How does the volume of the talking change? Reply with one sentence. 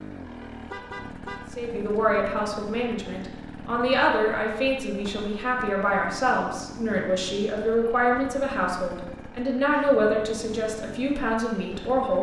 The loudness of the talking stays about the same.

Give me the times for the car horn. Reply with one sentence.
You can hear the car horn from 0.4 to 1.6 s.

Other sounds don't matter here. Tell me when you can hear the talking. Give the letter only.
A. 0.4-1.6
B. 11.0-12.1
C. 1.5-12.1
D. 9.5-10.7
C.